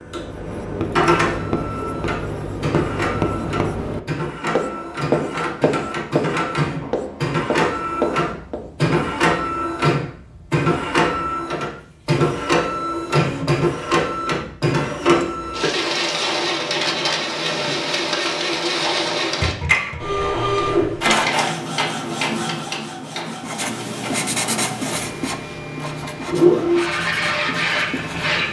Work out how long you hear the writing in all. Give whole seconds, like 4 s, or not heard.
14 s.